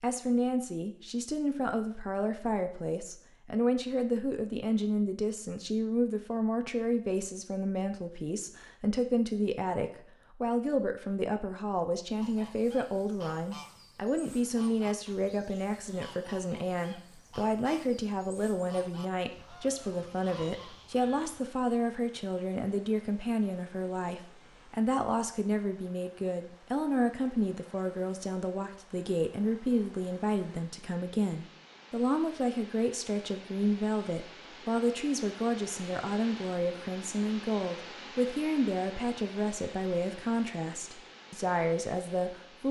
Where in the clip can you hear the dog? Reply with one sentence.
You can't hear the dog here.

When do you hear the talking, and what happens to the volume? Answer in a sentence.
You can hear the talking from 0.0 to 42.6 s, at a steady volume.